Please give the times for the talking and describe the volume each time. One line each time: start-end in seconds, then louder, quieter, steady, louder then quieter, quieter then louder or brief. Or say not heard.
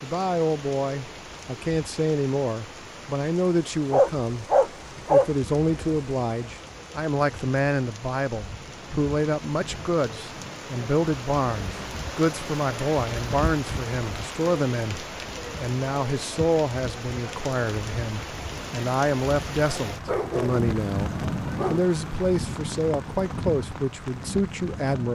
0.0-25.1 steady.